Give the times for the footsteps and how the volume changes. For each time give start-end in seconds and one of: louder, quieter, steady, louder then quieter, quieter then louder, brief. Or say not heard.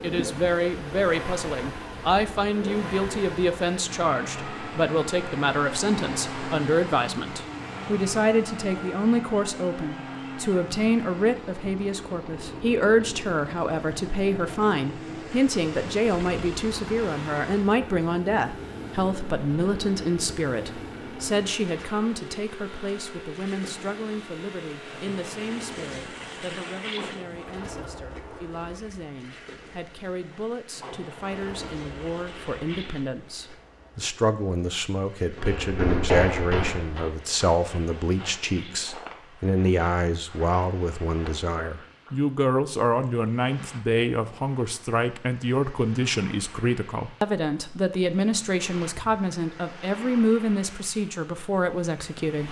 35.4-42.1 quieter.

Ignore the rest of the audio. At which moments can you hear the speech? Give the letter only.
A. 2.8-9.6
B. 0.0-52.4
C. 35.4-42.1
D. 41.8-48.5
B.